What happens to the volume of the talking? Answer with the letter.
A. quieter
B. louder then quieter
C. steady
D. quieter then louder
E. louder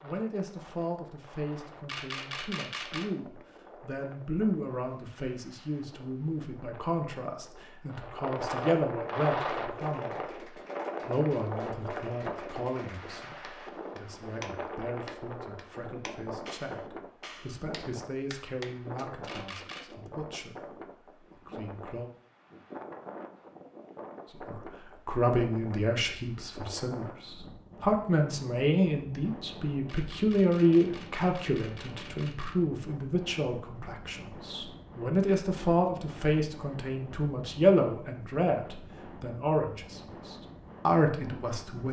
E.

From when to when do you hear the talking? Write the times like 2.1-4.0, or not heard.
0.0-22.1, 24.4-41.8.